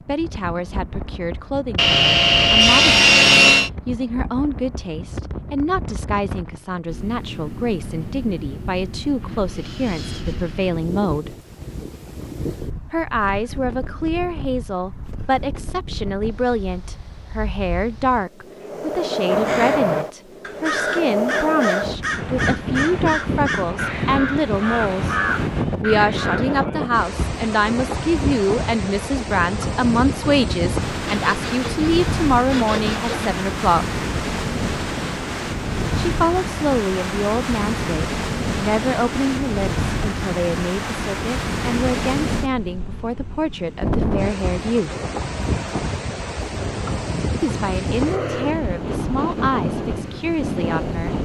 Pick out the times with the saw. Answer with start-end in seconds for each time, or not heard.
1.8-3.7, 31.1-33.4.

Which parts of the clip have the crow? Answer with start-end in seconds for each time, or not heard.
19.2-26.6.